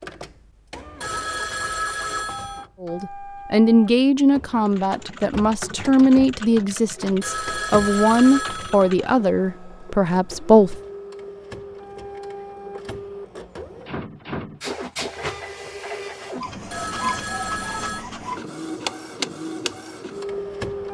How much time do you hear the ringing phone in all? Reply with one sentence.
You can hear the ringing phone for 5 seconds altogether.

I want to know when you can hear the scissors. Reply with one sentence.
The scissors can't be heard in this clip.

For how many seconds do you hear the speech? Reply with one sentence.
The speech can be heard for 8 seconds in total.